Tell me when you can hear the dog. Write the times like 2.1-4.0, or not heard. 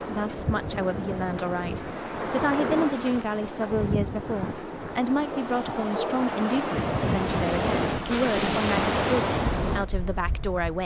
5.3-6.2.